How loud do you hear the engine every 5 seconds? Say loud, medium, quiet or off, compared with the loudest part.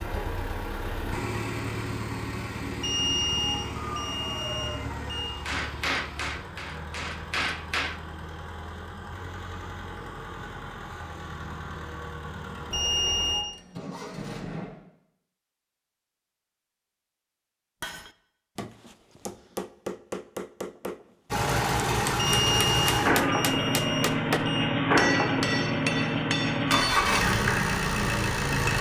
medium, quiet, quiet, off, loud, loud.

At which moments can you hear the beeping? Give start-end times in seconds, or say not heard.
2.8-5.3, 12.7-13.4, 22.1-24.7.